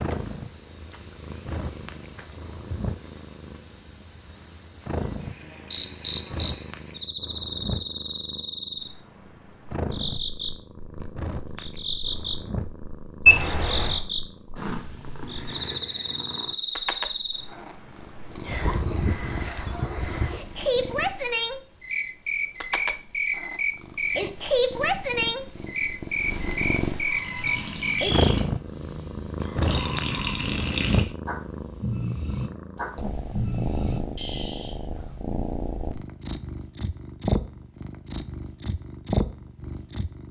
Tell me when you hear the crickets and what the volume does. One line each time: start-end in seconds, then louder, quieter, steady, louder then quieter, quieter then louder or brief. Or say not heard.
0.0-28.4 louder.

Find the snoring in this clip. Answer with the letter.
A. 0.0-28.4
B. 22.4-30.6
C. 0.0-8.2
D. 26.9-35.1
D.